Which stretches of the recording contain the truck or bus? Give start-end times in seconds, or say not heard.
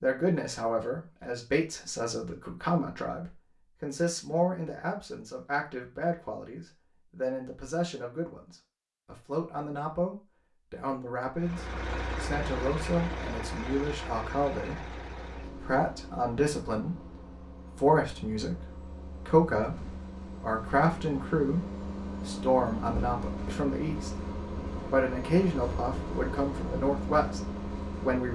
11.3-28.2.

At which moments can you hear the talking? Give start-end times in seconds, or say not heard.
0.0-17.1, 17.8-24.3, 24.9-28.2.